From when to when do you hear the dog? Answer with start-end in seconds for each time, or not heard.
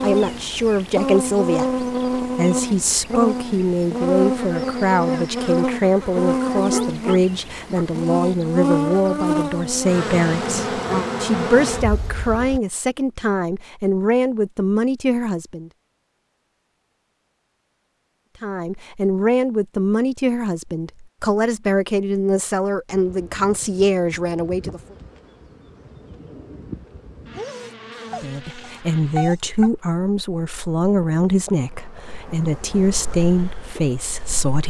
6.5-7.8, 27.4-29.7.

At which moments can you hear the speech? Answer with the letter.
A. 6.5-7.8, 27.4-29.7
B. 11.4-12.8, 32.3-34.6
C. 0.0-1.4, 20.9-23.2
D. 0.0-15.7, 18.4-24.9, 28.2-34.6
D.